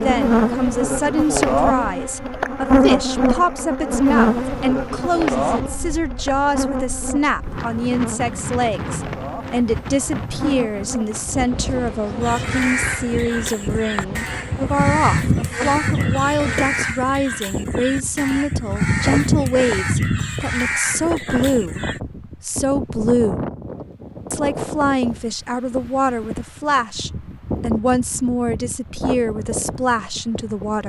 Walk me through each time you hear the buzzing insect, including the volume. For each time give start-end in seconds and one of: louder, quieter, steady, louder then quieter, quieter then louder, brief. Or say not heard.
0.0-16.8 quieter.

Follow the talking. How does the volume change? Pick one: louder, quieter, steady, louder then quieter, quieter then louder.
steady.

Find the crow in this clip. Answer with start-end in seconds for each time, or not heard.
12.2-22.0.